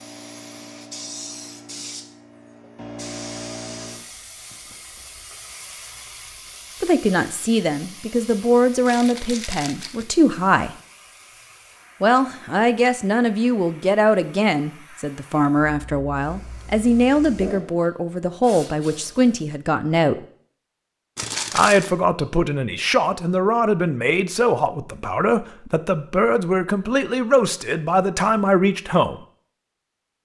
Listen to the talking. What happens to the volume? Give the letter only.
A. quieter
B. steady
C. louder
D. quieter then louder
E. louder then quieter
B.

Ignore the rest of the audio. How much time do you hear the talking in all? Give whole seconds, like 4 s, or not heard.
20 s.